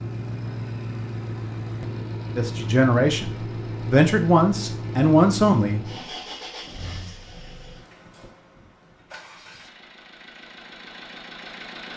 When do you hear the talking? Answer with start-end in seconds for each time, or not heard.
2.4-5.9.